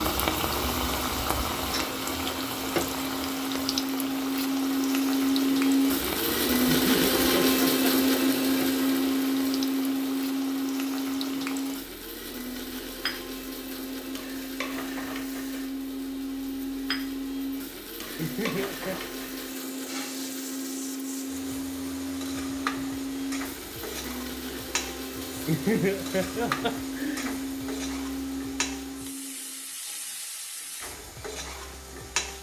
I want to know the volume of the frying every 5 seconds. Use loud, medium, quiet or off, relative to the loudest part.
loud, medium, medium, medium, medium, medium, medium.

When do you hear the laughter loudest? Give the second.
26 s.